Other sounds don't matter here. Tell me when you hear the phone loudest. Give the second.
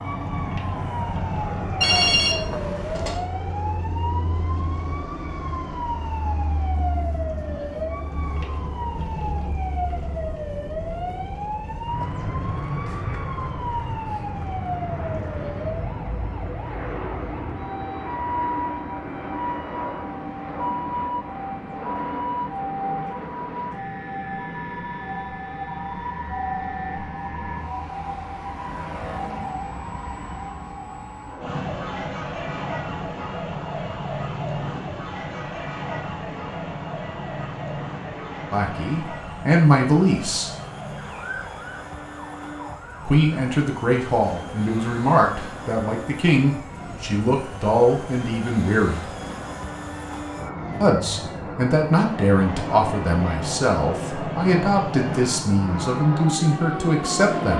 2 s.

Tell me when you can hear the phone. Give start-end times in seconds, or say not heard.
1.8-3.2.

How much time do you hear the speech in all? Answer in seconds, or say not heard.
15 s.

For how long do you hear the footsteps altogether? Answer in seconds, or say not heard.
not heard.